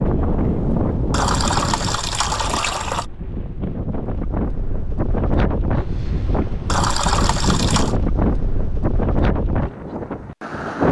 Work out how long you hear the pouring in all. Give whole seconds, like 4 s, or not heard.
3 s.